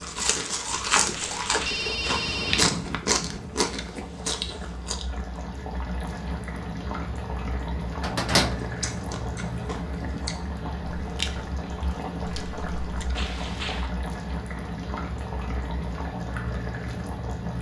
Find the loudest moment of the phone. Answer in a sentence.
The volume of the phone peaks at 2 seconds.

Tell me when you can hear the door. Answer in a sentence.
The door can be heard from 8.0 to 8.6 s.